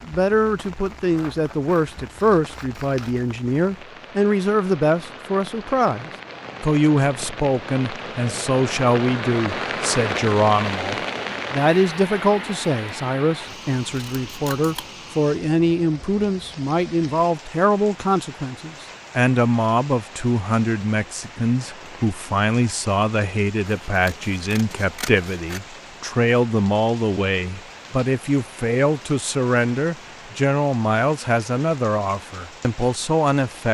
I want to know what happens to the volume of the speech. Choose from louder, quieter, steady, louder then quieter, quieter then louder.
steady.